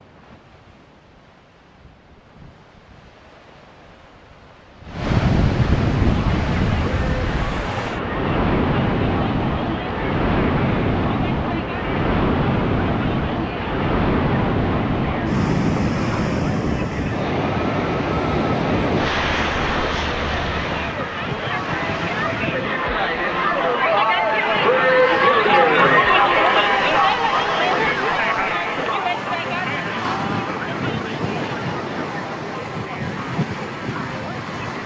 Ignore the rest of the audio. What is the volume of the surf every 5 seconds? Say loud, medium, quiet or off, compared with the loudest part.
quiet, loud, loud, loud, medium, medium, medium.